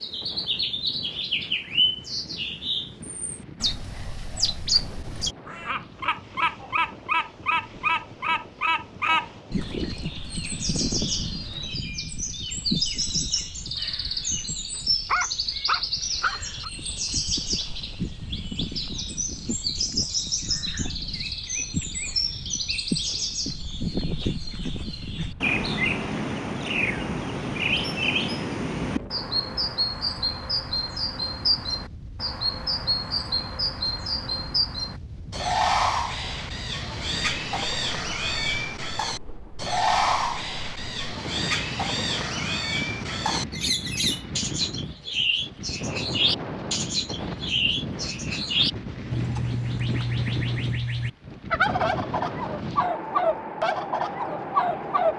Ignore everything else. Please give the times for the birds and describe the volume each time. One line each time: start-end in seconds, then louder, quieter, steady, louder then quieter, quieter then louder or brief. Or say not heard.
0.0-55.1 steady.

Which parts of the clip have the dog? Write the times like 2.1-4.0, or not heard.
15.1-16.7.